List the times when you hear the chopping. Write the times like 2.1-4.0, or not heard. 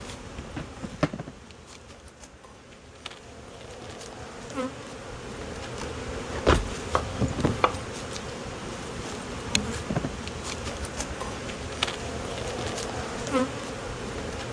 6.9-7.8.